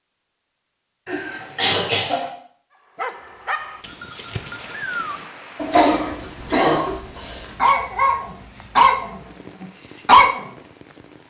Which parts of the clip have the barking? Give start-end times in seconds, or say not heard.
3.0-10.5.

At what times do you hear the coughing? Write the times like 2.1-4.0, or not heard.
1.1-2.3, 5.7-7.5.